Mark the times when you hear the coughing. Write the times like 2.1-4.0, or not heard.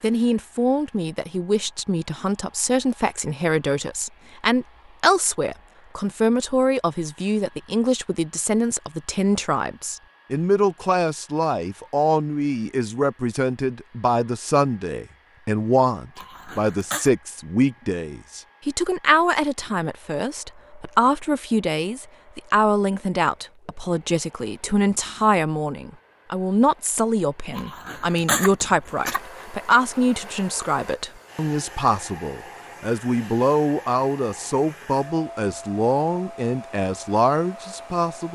16.1-17.1, 27.6-29.2.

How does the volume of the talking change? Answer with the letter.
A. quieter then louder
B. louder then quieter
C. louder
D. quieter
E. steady
E.